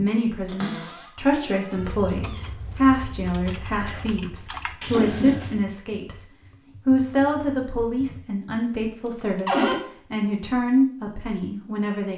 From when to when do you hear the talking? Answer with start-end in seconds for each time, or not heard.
0.0-6.2, 6.8-12.1.